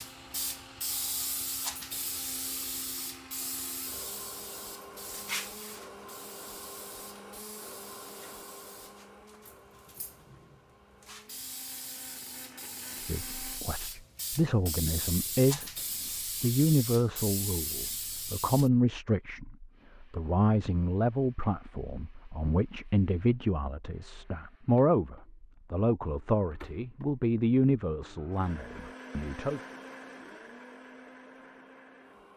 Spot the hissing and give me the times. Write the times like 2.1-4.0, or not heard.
0.0-18.7.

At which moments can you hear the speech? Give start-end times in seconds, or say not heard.
12.9-15.7, 16.4-29.6.